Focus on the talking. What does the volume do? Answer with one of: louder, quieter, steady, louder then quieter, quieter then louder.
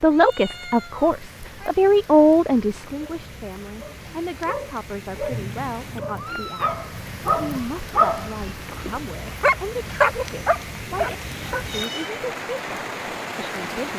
quieter.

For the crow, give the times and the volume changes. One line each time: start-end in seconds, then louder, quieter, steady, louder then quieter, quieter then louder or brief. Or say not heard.
not heard.